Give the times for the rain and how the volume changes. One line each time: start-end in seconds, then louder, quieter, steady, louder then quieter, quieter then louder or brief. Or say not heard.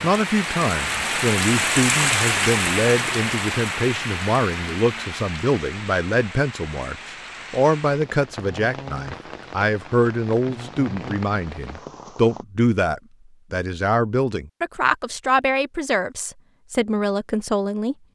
0.0-12.4 quieter.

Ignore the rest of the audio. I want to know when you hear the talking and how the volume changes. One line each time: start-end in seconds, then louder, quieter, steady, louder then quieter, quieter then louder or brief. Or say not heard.
0.0-17.9 steady.